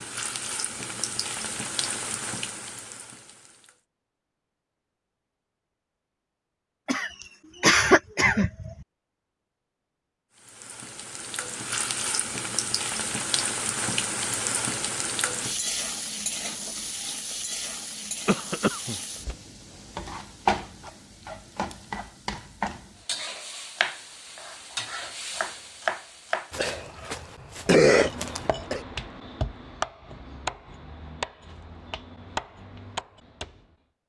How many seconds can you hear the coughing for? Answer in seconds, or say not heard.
5 s.